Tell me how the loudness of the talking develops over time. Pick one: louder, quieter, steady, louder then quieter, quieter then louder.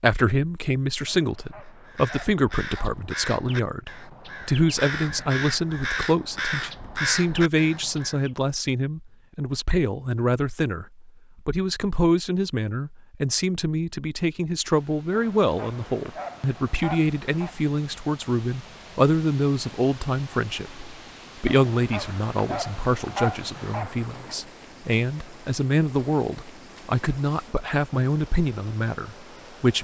steady.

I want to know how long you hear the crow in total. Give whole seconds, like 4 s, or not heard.
7 s.